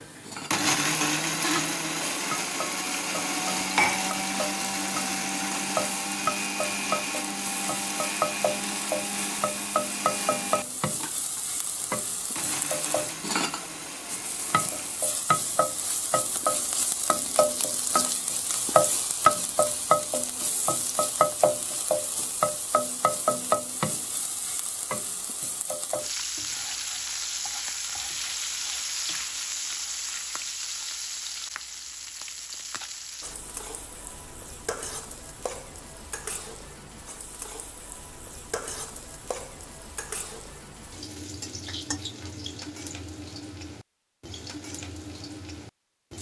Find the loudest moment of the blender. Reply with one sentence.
The volume of the blender peaks at 1 second.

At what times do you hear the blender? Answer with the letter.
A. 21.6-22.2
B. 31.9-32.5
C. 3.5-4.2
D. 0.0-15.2
D.